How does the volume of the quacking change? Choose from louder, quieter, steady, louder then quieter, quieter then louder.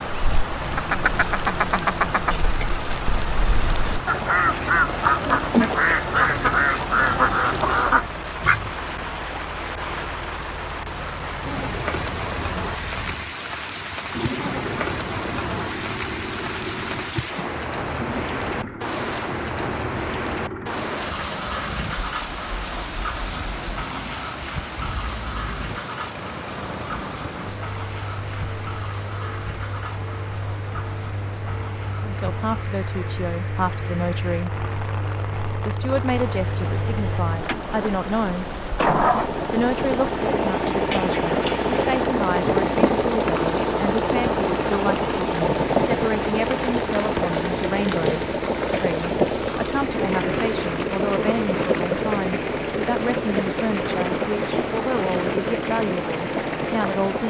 quieter then louder.